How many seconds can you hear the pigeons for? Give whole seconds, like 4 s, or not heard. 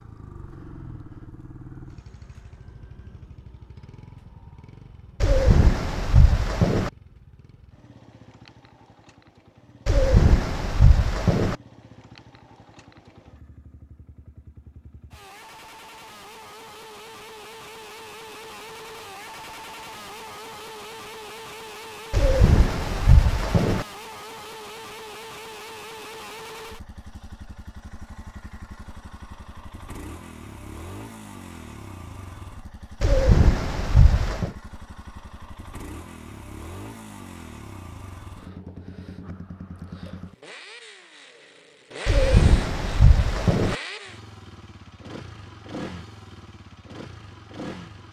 8 s.